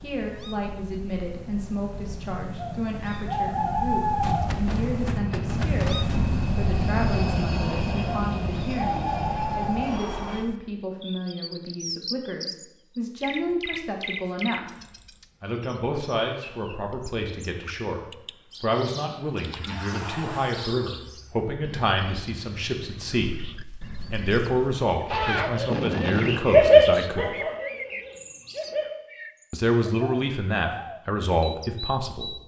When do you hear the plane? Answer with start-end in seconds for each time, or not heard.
0.0-10.5.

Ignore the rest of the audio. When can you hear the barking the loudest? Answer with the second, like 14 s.
27 s.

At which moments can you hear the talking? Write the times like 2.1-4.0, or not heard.
0.0-14.7, 15.4-18.0, 18.6-27.2, 29.5-32.4.